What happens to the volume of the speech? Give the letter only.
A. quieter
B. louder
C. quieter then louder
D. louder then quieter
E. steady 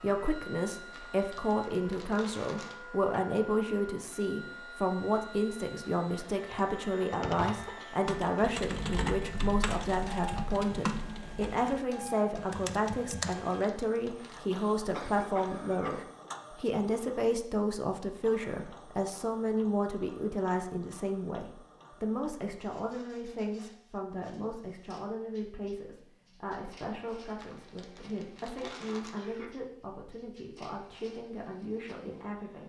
A.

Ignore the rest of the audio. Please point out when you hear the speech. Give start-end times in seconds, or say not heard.
0.0-32.6.